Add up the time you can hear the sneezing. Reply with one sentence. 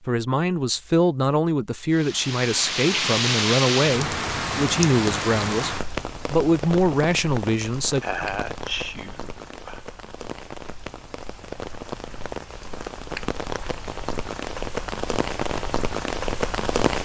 You can hear the sneezing for 2 seconds altogether.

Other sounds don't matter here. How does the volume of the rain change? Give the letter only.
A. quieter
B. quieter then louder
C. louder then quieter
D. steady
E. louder
B.